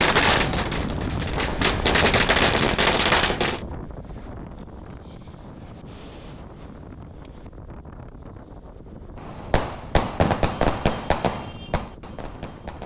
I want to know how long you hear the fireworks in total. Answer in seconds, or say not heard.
7 s.